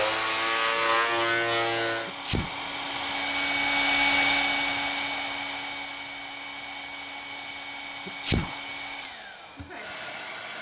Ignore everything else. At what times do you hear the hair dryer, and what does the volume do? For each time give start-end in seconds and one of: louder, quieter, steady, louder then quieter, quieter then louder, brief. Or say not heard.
0.1-10.5 louder then quieter.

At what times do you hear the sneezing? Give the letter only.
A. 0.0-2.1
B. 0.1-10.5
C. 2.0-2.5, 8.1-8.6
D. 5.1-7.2
C.